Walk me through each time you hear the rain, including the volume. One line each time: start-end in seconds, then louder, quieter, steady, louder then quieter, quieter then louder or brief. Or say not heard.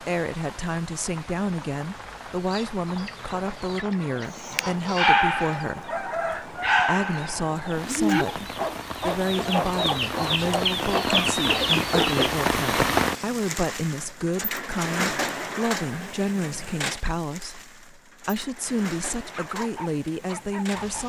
0.0-21.0 louder then quieter.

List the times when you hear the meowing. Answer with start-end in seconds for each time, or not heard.
not heard.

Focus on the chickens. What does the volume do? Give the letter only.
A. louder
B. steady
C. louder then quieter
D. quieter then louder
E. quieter
A.